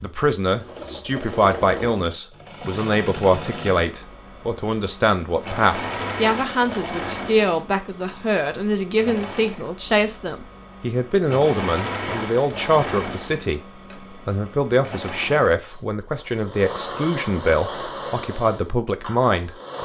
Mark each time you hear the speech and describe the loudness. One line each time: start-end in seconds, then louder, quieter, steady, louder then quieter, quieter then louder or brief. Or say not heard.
0.0-19.8 steady.